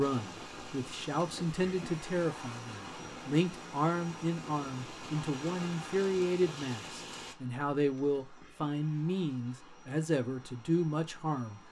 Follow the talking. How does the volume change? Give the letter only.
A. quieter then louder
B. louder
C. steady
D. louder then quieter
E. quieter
C.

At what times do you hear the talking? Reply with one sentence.
The talking can be heard from 0.0 to 11.6 s.